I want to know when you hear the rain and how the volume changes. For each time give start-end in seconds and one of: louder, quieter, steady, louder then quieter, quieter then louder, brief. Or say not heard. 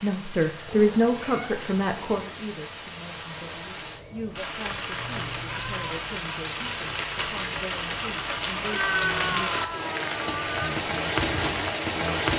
0.0-12.3 louder.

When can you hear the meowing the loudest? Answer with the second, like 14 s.
9 s.